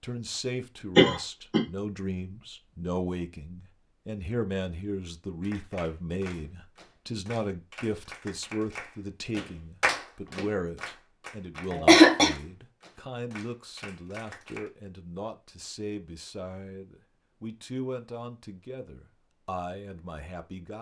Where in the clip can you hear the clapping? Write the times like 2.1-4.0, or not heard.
5.4-14.7.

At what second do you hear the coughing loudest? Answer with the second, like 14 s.
12 s.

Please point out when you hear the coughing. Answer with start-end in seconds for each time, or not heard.
0.9-1.6, 11.7-12.3.